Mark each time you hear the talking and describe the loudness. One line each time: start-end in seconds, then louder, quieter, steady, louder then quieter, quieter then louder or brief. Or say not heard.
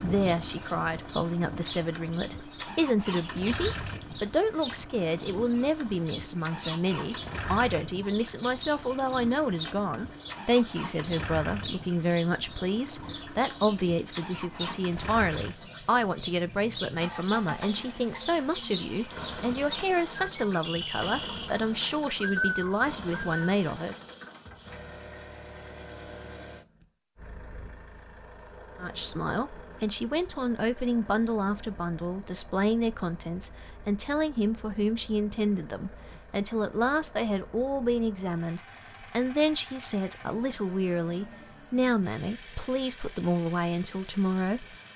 0.0-23.9 steady
28.8-44.8 steady.